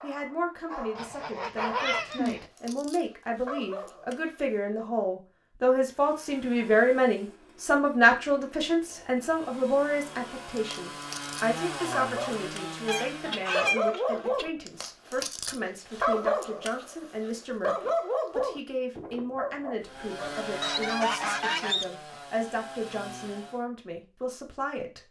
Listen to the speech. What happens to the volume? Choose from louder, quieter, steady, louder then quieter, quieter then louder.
louder then quieter.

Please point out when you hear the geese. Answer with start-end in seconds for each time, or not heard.
0.9-2.5, 12.8-14.4, 20.6-22.2.